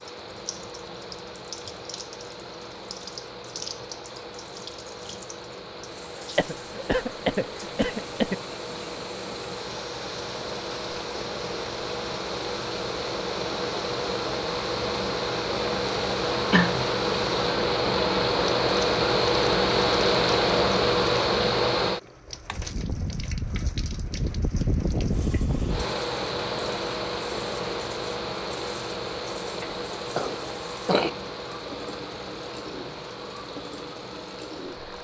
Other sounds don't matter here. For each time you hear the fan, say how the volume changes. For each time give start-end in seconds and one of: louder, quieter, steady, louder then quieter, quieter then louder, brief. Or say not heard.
0.0-34.9 louder then quieter.